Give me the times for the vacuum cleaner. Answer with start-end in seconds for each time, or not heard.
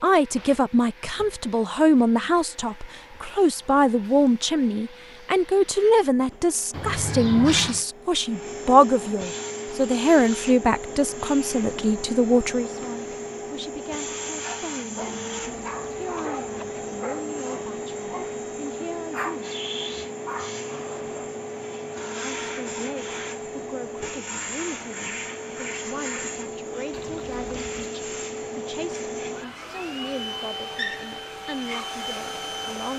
0.0-32.9.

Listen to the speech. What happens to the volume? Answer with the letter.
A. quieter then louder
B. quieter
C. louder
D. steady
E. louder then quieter
B.